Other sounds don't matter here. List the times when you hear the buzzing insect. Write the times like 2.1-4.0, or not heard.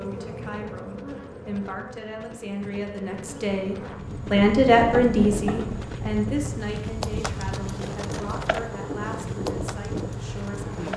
0.0-10.9.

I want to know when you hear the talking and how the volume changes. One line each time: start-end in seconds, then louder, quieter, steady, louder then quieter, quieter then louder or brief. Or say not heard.
0.0-10.8 louder then quieter.